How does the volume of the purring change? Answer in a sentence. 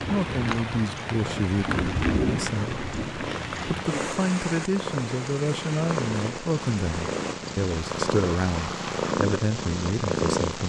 The loudness of the purring goes up.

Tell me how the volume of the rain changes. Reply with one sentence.
The loudness of the rain goes down.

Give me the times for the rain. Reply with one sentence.
The rain can be heard from 0.0 to 9.2 s.